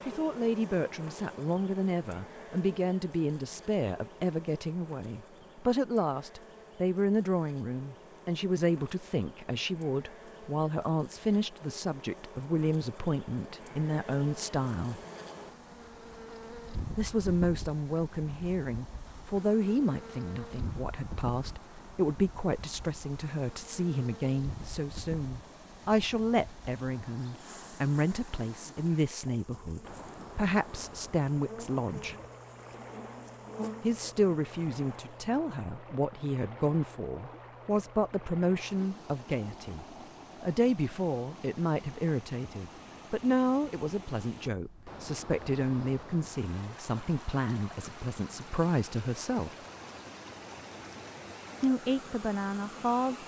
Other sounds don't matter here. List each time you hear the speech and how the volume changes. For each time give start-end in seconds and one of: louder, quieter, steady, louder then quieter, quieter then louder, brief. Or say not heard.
0.1-15.0 steady
16.9-32.1 steady
33.8-49.5 steady
51.6-53.2 brief.